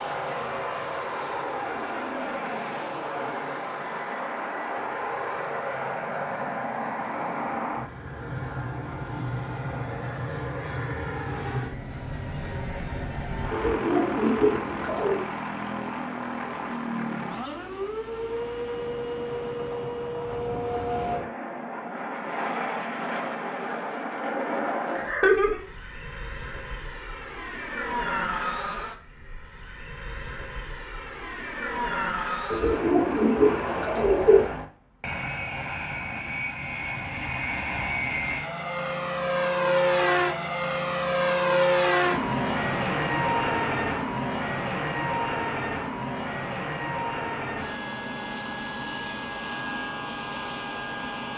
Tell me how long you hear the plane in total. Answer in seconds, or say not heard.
51 s.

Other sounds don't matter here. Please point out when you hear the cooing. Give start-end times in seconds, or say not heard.
13.5-15.2, 32.5-34.5.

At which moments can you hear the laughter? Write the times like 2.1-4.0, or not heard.
24.9-25.6.